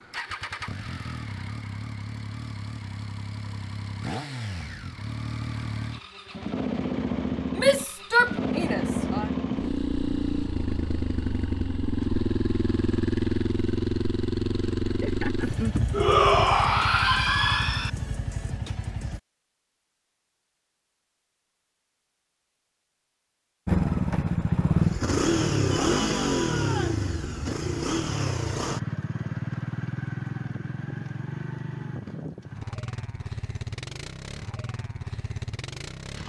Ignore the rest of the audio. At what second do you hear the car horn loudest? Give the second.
16 s.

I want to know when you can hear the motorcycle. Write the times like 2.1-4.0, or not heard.
0.0-19.2, 23.6-36.2.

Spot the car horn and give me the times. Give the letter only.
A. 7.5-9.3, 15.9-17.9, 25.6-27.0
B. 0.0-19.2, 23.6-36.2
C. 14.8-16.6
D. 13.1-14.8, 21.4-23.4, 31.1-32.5
C.